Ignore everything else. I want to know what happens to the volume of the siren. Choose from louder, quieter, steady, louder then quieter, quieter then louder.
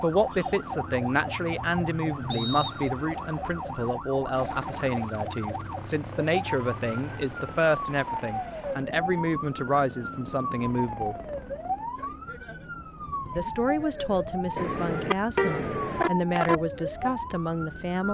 steady.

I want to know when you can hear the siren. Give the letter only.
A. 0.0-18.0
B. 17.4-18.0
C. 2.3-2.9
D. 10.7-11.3
A.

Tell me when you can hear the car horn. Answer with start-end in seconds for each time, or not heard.
14.6-16.6.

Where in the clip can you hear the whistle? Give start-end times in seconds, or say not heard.
2.3-2.9.